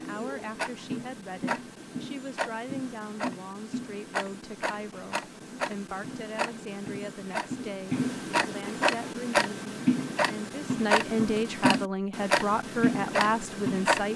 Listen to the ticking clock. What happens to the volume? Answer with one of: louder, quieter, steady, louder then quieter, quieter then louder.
louder.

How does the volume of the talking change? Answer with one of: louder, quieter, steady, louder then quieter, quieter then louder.
louder.